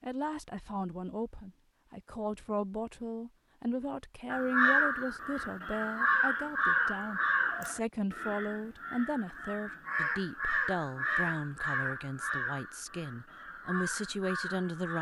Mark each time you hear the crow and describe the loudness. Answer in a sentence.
The crow can be heard from 4.3 to 14.9 s, getting quieter.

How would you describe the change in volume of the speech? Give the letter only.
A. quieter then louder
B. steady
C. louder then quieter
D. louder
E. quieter
B.